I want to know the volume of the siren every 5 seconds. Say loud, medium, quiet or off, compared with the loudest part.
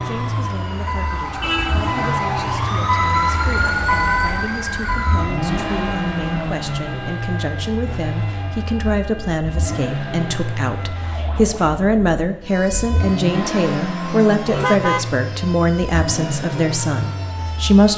loud, medium, quiet, quiet.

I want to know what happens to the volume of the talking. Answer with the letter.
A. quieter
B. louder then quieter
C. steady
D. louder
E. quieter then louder
D.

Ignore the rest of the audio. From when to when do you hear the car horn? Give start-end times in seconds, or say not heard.
1.4-2.0, 14.4-15.2.